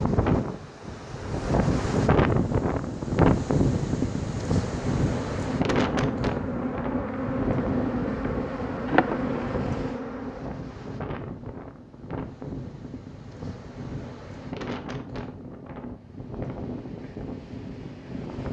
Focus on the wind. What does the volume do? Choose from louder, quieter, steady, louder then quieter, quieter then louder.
quieter.